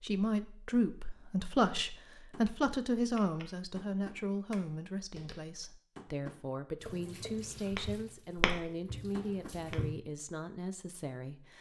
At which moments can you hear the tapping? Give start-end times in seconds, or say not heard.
1.6-9.9.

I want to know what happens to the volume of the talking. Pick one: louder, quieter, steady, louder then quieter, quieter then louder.
quieter.